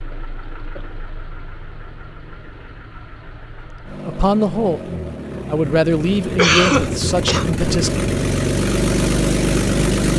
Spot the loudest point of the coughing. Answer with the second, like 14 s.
7 s.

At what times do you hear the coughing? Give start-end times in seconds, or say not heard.
0.1-0.9, 6.3-7.5.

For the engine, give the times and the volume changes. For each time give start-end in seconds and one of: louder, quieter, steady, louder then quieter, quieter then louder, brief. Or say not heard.
0.0-10.1 louder.